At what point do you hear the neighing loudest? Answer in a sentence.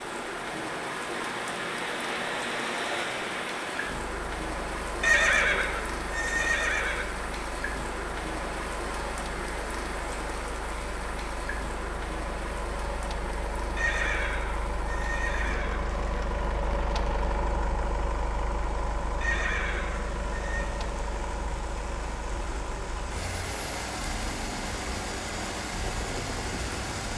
The loudest moment of the neighing is at 5 seconds.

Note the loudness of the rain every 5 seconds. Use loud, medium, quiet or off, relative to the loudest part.
loud, loud, loud, medium, medium, loud.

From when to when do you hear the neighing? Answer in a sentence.
You can hear the neighing from 5.0 to 7.0 s, from 13.8 to 15.8 s and from 19.2 to 20.7 s.